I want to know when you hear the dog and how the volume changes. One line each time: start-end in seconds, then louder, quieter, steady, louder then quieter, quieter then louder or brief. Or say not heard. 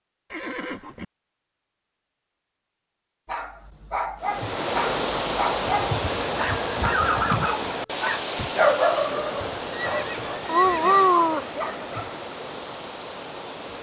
3.2-12.1 louder.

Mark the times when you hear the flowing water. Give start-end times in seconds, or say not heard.
4.2-13.7.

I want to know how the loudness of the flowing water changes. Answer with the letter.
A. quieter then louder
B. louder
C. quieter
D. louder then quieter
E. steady
C.